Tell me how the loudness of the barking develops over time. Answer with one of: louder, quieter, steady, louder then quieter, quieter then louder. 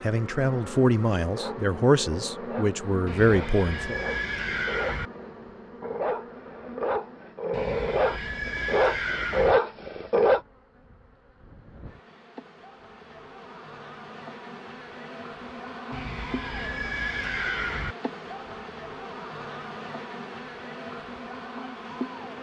louder.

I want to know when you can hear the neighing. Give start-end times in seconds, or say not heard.
3.0-5.1, 7.5-9.6, 15.9-17.9.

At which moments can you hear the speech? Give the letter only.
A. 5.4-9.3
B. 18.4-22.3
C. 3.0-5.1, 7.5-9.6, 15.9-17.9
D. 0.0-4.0
D.